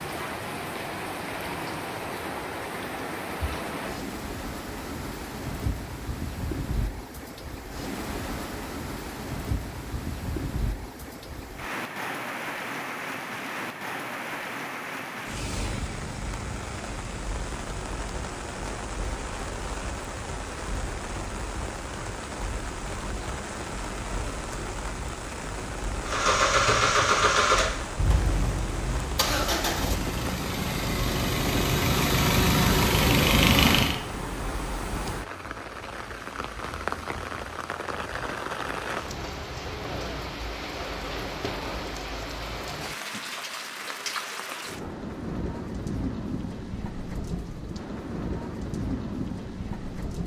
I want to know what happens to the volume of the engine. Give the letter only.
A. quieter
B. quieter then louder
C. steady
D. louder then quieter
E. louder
B.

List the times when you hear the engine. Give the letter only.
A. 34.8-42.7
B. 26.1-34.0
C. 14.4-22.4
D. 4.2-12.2
B.